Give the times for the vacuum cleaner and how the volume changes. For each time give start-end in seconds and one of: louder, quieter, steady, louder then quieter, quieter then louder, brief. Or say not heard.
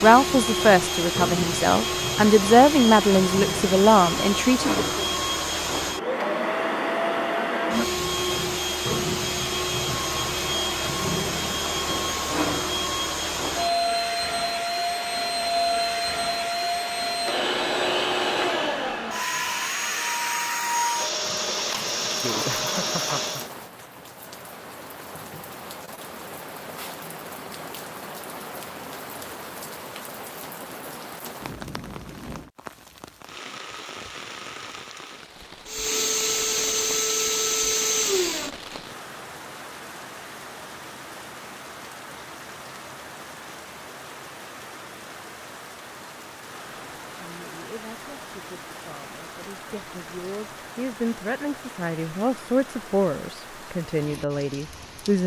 0.0-23.5 steady
35.6-38.5 brief.